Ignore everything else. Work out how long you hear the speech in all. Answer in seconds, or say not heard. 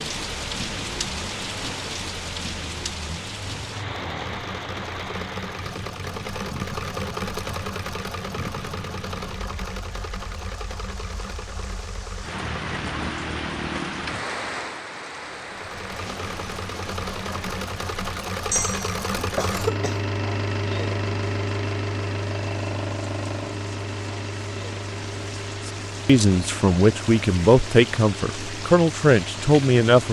4 s.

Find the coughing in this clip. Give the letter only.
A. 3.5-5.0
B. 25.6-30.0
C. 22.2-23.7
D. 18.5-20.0
D.